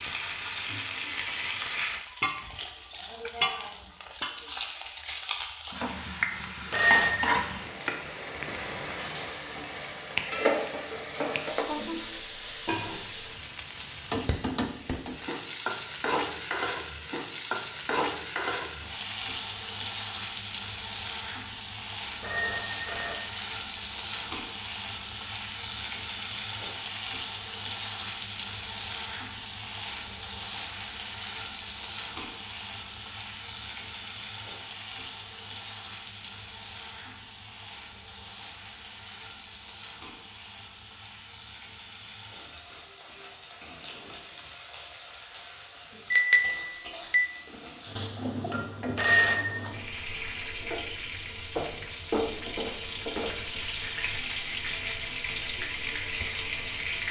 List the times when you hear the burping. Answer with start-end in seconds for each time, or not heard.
not heard.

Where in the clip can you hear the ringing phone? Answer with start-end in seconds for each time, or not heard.
6.7-7.3, 22.2-23.1, 49.0-49.5.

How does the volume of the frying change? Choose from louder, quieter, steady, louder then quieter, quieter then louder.
quieter then louder.